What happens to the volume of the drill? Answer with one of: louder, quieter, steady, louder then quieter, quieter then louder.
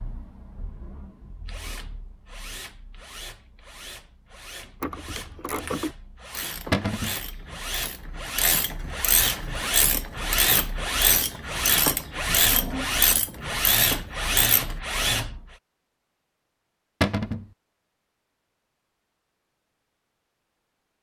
louder.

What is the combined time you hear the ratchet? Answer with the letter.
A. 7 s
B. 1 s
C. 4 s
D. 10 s
D.